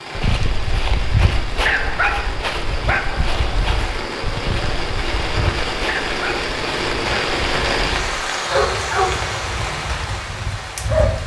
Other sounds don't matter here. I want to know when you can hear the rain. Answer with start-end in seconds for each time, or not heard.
0.0-11.2.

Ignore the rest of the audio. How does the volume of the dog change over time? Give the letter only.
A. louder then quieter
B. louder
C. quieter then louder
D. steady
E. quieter
C.